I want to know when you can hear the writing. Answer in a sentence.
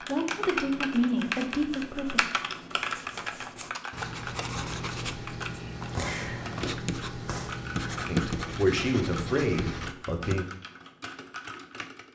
The writing can be heard from 1.1 to 10.3 s.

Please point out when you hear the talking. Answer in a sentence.
The talking can be heard from 0.1 to 2.2 s and from 8.1 to 10.4 s.